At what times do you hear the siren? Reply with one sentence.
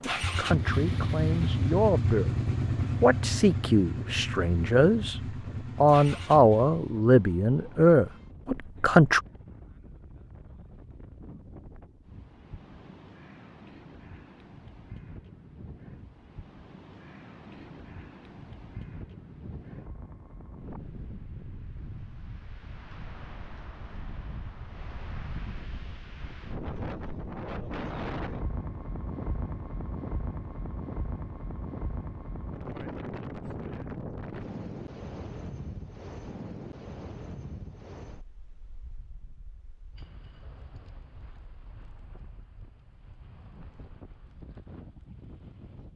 You can't hear the siren here.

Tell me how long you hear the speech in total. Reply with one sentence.
You can hear the speech for 8 seconds altogether.